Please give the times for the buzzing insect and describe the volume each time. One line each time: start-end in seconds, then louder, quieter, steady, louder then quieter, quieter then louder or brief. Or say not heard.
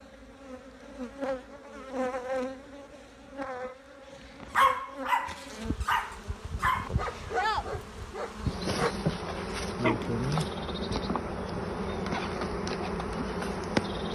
0.0-14.0 quieter then louder.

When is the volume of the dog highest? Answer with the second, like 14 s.
5 s.